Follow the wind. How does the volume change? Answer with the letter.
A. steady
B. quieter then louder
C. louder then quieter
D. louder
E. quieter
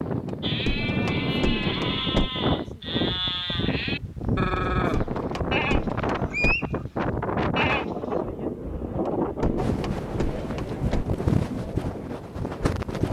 A.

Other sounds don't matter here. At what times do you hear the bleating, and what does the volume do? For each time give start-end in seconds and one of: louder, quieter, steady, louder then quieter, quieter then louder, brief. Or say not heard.
0.4-7.9 steady.